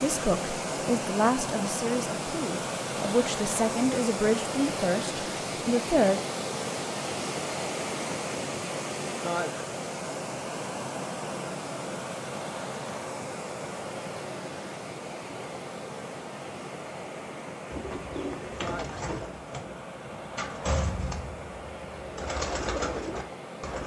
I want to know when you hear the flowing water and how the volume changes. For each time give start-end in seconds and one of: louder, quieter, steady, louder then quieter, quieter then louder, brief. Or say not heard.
0.0-23.8 quieter.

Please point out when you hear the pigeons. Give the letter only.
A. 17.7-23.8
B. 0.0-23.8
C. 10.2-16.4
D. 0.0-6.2
A.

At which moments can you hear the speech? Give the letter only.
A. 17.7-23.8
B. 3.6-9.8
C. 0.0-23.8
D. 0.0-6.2
D.